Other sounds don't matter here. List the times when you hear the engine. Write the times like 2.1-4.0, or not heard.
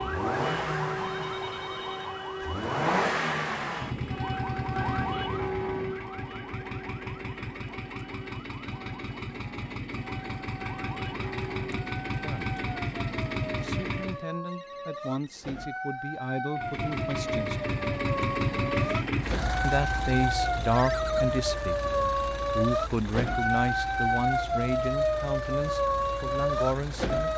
0.0-14.2, 16.6-27.3.